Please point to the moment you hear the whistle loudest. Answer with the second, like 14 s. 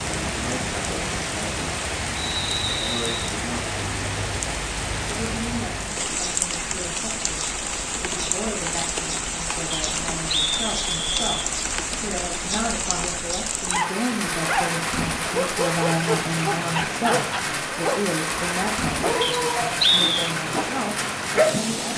20 s.